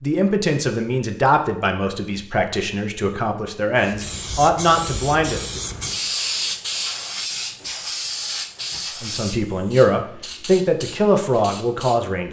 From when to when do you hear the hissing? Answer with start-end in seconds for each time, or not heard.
3.8-12.2.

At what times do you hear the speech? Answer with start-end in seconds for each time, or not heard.
0.0-5.6, 9.0-12.2.